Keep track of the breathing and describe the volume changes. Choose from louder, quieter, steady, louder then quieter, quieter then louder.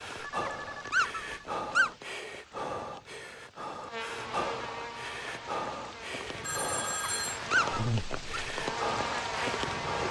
steady.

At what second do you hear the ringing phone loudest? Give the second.
7 s.